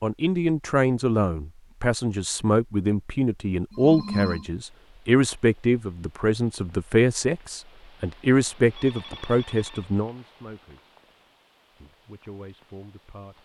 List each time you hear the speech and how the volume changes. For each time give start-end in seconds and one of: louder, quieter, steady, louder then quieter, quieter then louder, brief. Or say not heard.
0.0-10.9 steady
11.8-13.4 brief.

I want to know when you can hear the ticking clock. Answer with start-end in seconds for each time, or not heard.
not heard.